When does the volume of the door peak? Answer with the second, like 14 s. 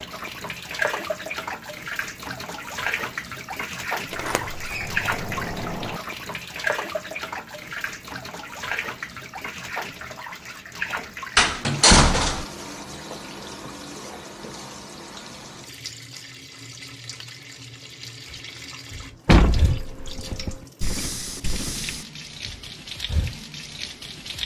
12 s.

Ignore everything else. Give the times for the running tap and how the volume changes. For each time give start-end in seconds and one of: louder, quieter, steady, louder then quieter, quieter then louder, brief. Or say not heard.
0.0-24.4 quieter.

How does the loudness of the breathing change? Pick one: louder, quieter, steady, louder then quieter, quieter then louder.
louder then quieter.